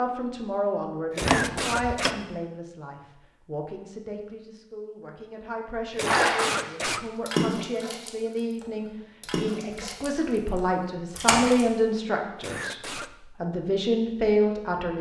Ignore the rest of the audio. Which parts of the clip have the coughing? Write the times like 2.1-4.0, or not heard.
1.1-2.1, 5.9-7.3, 12.3-13.1.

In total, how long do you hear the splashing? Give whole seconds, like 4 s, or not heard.
5 s.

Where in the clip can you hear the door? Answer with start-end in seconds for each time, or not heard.
1.2-2.2.